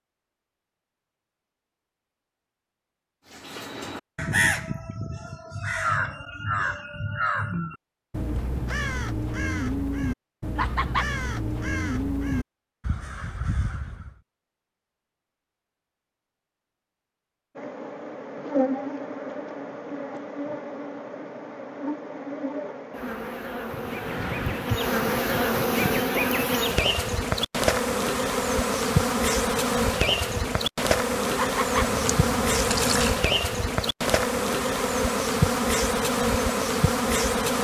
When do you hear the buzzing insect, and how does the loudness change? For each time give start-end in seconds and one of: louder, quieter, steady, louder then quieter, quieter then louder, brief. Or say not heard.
17.6-37.6 louder.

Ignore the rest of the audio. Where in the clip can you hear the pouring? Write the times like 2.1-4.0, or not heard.
31.8-33.1.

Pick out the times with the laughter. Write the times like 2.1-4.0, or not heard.
10.6-11.1, 31.4-31.9.